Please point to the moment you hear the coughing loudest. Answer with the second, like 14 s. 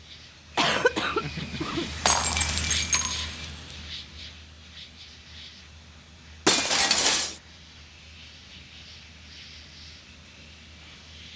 1 s.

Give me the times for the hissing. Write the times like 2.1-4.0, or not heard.
0.0-11.3.